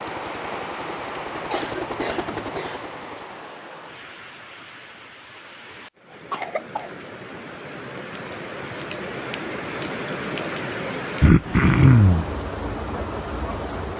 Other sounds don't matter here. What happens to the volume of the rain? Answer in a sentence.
The loudness of the rain goes down, then up.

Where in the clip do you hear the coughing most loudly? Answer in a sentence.
The volume of the coughing peaks at 12 seconds.